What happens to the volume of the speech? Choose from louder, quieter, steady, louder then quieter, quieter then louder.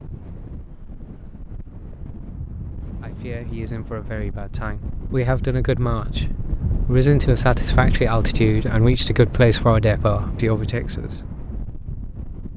louder.